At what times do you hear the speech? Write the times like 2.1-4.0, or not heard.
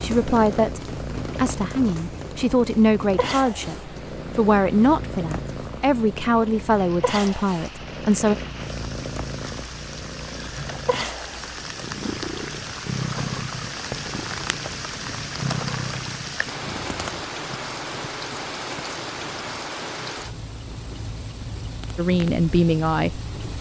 0.0-8.3, 21.9-23.5.